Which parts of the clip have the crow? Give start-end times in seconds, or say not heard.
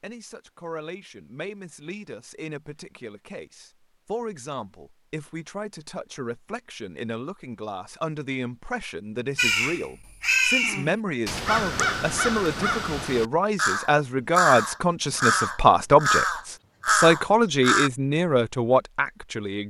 9.3-17.9.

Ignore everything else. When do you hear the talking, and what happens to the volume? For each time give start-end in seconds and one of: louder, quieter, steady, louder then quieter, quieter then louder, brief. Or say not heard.
0.0-19.6 louder.